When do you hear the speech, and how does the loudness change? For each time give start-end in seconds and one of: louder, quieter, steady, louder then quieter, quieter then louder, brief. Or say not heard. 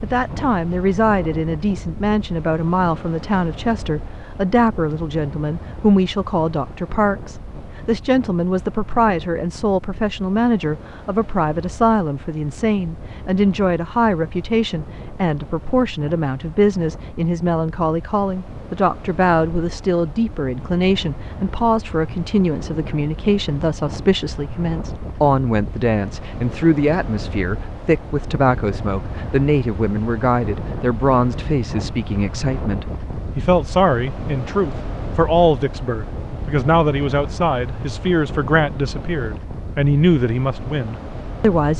0.0-41.7 steady.